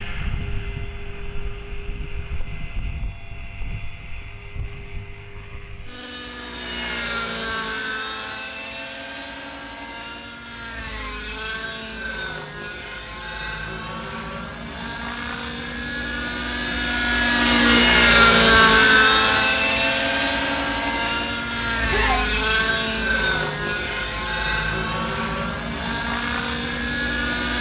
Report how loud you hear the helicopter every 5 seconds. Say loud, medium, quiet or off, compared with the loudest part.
quiet, quiet, quiet, loud, medium, medium.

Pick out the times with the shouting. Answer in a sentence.
The shouting can be heard from 21.9 to 22.3 s.